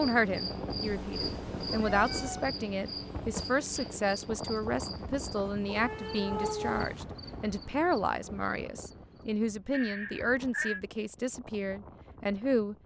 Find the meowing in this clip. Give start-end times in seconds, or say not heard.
0.8-2.5, 5.7-7.0, 9.7-10.8.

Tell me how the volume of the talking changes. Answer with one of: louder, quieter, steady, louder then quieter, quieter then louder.
steady.